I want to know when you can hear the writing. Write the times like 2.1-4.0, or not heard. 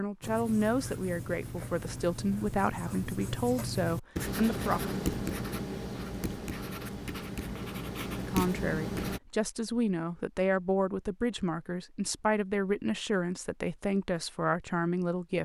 0.2-9.2.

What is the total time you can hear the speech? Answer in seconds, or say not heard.
12 s.